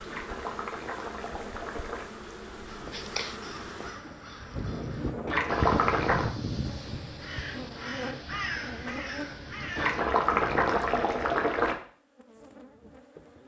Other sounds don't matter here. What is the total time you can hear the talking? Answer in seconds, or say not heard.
not heard.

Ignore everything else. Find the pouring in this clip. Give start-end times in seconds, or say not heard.
0.1-2.0, 5.2-6.3, 9.8-11.8.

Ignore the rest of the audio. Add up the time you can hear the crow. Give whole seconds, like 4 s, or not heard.
8 s.